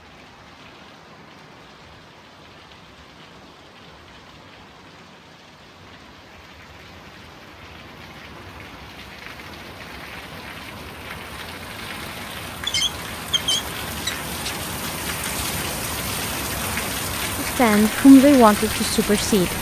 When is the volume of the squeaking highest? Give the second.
13 s.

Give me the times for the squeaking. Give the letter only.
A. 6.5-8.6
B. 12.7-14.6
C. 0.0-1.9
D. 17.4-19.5
B.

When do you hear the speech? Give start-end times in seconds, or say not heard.
17.4-19.5.